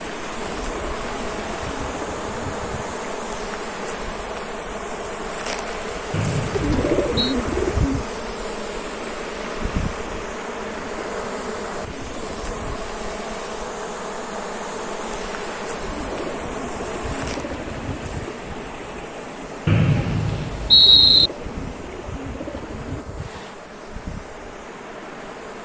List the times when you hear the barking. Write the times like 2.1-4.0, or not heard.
not heard.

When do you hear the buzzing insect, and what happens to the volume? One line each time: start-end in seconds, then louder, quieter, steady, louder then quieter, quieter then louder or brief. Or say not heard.
0.0-25.6 quieter.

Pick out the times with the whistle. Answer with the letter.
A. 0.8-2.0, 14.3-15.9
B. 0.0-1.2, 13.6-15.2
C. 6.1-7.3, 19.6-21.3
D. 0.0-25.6
C.